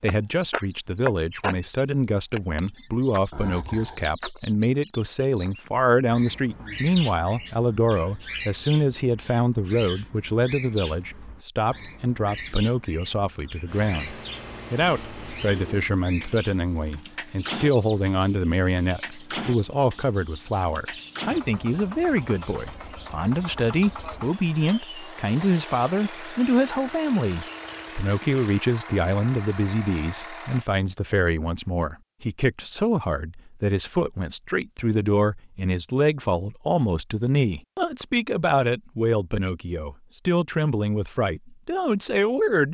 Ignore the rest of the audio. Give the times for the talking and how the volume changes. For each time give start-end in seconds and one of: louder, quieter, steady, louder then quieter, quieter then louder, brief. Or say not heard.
0.0-42.7 steady.